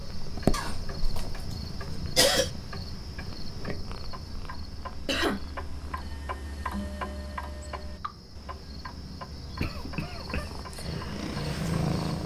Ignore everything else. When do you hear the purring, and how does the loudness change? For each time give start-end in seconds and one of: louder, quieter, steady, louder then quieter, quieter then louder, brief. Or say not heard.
0.0-6.0 quieter
10.0-12.2 brief.